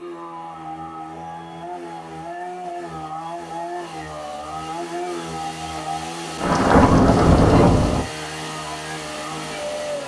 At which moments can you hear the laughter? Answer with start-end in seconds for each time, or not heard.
not heard.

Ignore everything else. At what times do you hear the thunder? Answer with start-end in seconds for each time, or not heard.
6.4-8.1.